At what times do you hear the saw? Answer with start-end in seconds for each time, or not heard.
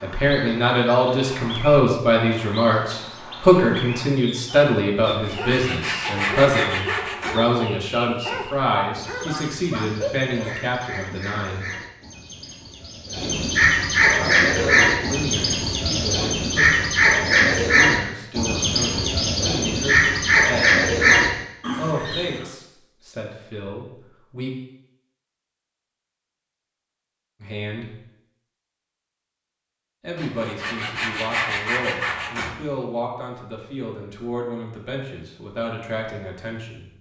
5.0-7.5, 30.1-32.6.